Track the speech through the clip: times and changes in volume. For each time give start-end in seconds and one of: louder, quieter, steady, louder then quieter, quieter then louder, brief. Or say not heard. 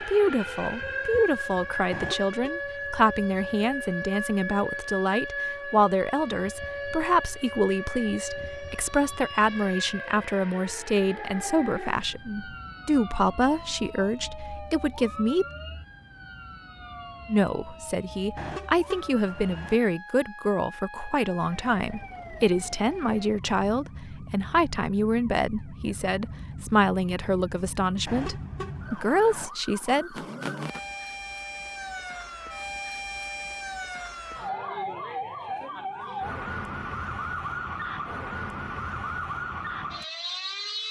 0.0-15.4 steady
17.2-30.1 steady.